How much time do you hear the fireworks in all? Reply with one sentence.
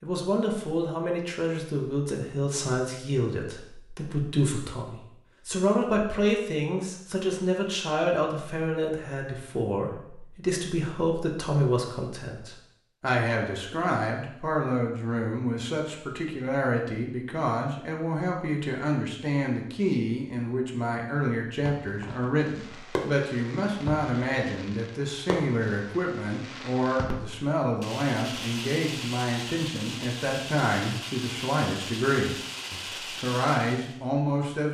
You can hear the fireworks for 12 seconds altogether.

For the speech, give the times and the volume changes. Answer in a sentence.
You can hear the speech from 0.0 to 34.6 s, at a steady volume.